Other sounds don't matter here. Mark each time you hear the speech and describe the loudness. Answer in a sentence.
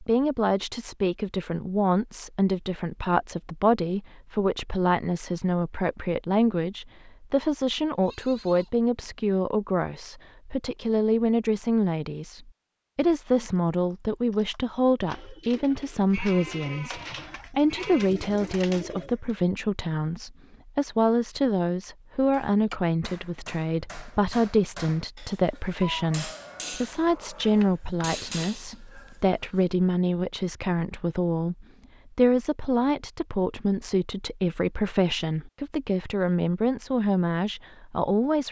You can hear the speech from 0.0 to 38.4 s, at a steady volume.